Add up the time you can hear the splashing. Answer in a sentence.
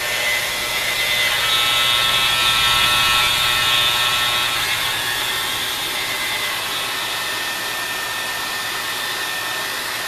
The splashing can't be heard in this clip.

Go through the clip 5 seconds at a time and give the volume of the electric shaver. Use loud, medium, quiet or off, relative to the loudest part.
loud, medium.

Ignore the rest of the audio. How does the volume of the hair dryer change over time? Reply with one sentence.
The loudness of the hair dryer stays about the same.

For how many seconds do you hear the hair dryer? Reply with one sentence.
You can hear the hair dryer for 10 seconds altogether.